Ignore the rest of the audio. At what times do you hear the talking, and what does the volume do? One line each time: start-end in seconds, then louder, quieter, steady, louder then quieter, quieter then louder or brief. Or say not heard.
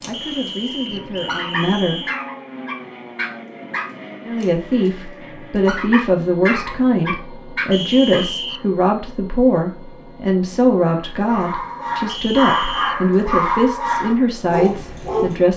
0.1-2.0 brief
4.2-15.5 steady.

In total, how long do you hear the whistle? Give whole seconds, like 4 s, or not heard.
4 s.